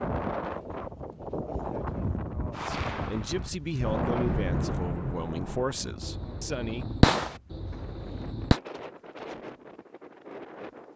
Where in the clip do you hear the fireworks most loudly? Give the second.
7 s.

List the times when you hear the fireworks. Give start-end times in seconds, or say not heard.
2.5-8.6.